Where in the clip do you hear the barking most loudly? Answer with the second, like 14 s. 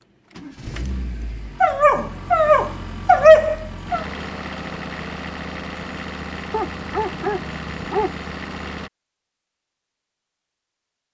3 s.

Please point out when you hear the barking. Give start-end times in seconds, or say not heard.
1.6-4.0, 6.5-8.1.